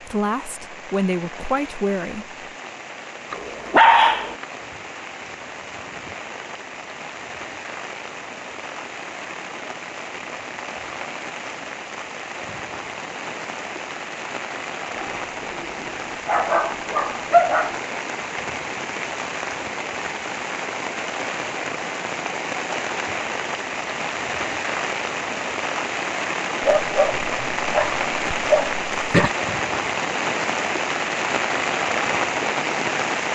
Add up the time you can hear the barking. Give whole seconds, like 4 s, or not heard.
6 s.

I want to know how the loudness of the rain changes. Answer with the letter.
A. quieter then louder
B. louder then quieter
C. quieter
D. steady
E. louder
E.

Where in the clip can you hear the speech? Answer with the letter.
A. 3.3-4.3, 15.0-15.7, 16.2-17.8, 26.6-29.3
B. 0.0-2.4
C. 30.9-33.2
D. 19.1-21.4
B.